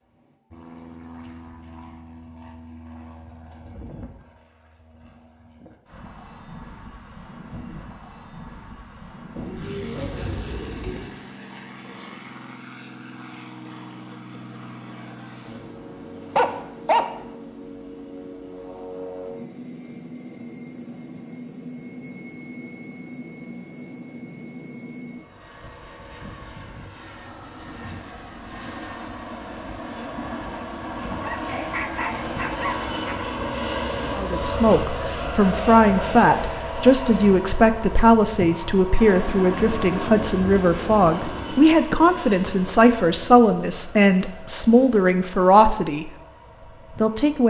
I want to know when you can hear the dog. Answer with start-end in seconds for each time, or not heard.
16.4-17.1, 31.1-33.1.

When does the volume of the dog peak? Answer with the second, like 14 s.
17 s.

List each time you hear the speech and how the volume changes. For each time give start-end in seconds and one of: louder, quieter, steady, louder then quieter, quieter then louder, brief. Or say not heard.
34.1-46.1 steady
46.9-47.4 brief.